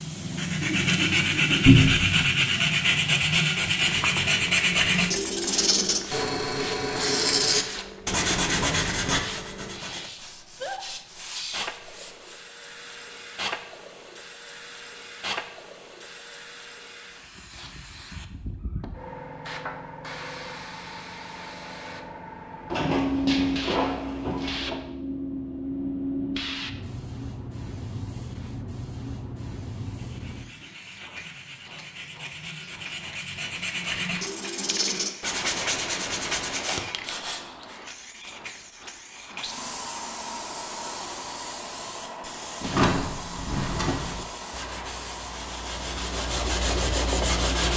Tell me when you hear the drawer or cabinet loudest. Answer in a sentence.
The loudest moment of the drawer or cabinet is at 2 seconds.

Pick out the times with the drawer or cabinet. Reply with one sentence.
You can hear the drawer or cabinet from 1.6 to 2.1 s, from 22.7 to 24.8 s and from 42.6 to 44.1 s.